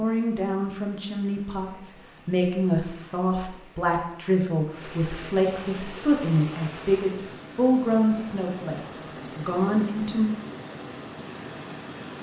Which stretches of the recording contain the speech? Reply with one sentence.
The speech can be heard from 0.0 to 10.3 s.